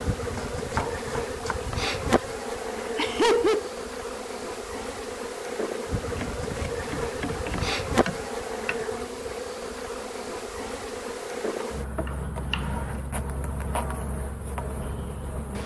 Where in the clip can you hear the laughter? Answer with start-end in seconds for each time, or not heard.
2.8-3.7.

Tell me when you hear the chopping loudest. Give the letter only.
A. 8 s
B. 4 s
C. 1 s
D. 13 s
C.